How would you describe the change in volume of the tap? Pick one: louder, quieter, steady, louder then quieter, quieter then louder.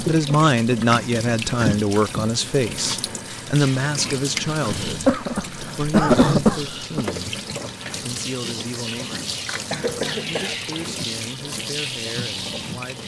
steady.